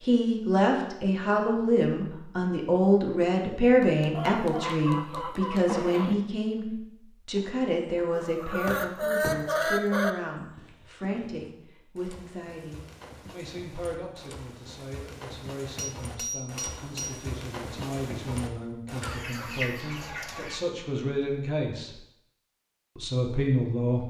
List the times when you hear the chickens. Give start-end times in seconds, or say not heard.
4.2-6.2, 8.2-10.2, 19.0-20.6.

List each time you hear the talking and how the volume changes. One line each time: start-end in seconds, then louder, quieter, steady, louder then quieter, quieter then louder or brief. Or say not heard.
0.0-22.0 quieter then louder
22.9-24.0 brief.